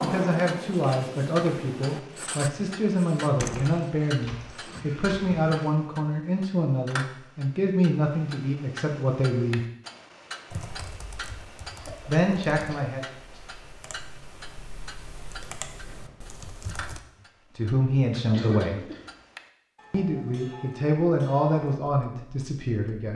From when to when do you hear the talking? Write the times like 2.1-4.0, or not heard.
0.0-9.6, 12.1-13.1, 17.6-18.8, 19.9-23.1.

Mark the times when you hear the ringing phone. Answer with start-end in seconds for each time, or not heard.
not heard.